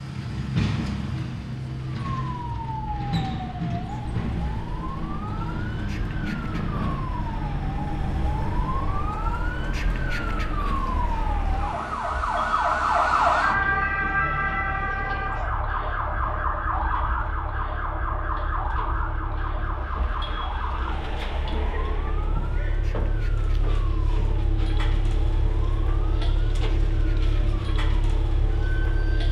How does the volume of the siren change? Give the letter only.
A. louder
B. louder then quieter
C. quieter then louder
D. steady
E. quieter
B.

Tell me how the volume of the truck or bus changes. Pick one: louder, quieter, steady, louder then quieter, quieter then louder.
quieter then louder.